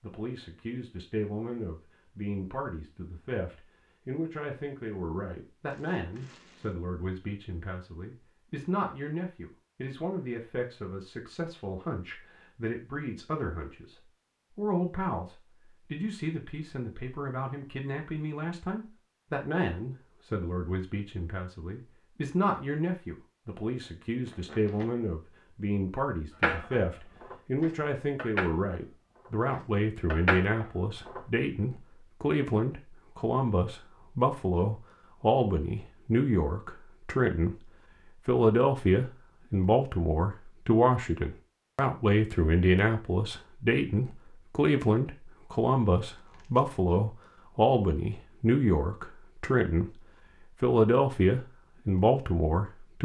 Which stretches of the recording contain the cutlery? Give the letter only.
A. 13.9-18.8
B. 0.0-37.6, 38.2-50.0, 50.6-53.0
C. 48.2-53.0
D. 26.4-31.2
D.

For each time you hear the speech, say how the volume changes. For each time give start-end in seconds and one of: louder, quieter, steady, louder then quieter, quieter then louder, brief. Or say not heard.
0.0-37.6 louder
38.2-50.0 steady
50.6-53.0 brief.